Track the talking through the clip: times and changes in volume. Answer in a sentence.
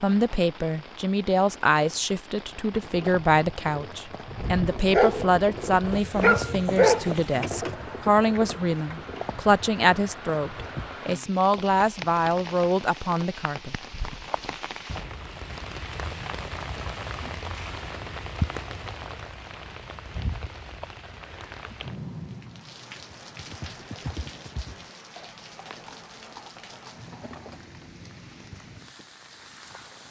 You can hear the talking from 0.0 to 13.8 s, at a steady volume.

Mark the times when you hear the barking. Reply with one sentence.
You can hear the barking from 4.3 to 7.2 s.